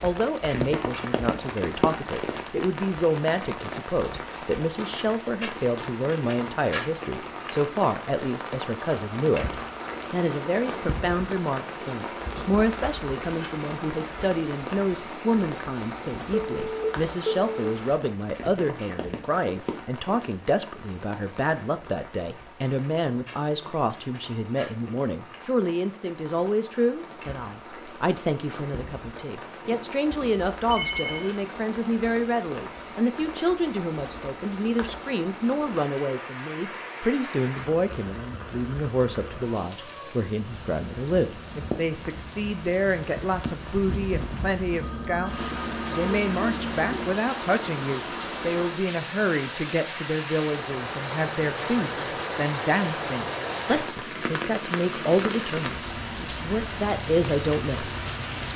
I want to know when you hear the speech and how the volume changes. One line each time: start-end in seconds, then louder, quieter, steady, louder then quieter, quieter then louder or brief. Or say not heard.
0.0-57.9 steady.